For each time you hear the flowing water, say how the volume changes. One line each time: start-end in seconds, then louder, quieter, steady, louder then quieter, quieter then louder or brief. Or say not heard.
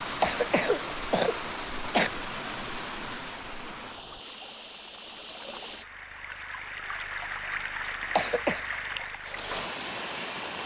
0.0-10.6 quieter then louder.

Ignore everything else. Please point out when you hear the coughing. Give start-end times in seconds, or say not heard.
0.2-2.1, 8.2-8.6.